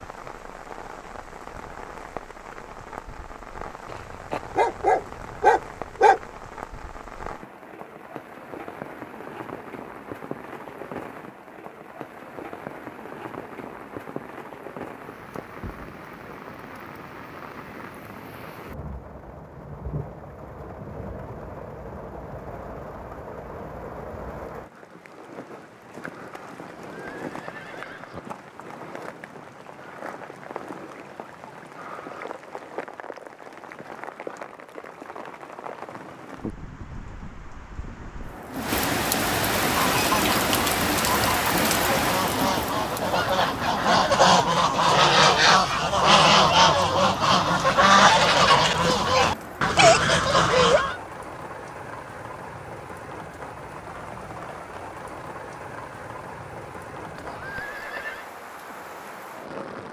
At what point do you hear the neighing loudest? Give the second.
58 s.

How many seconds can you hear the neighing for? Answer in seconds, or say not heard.
3 s.